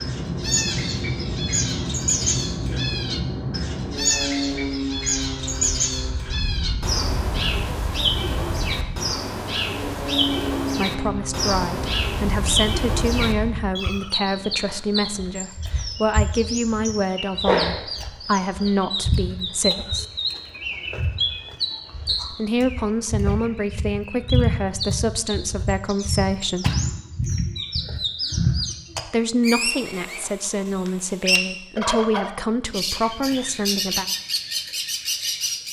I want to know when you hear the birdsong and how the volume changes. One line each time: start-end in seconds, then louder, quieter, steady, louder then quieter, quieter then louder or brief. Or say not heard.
0.0-35.6 steady.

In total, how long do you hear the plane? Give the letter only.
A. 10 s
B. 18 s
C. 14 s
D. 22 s
C.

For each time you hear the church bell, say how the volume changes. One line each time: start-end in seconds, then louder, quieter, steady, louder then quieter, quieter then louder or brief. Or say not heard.
not heard.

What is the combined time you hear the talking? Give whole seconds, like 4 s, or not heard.
19 s.